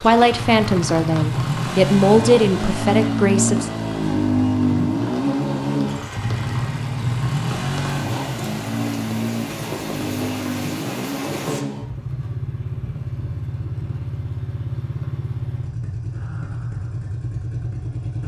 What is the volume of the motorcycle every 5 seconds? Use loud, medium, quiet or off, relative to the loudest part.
loud, loud, medium, medium.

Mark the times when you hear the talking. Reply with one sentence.
The talking can be heard from 0.0 to 3.7 s.